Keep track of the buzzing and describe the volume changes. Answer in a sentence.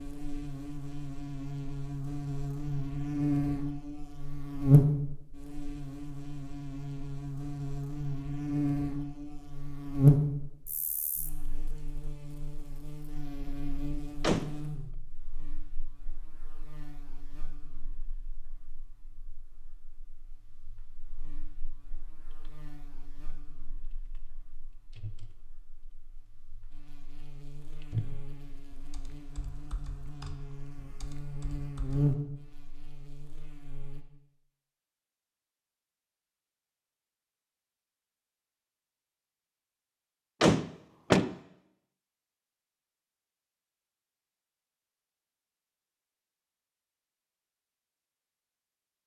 The loudness of the buzzing goes down, then up.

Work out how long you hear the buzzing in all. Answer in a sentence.
The buzzing can be heard for 34 seconds in total.